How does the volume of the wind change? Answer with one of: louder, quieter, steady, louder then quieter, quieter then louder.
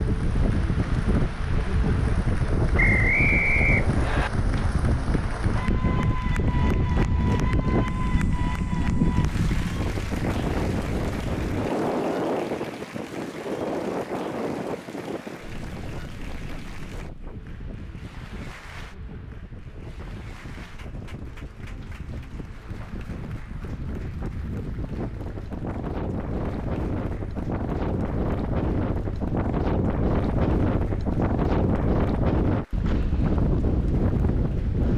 quieter then louder.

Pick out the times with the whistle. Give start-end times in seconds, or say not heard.
2.8-4.3.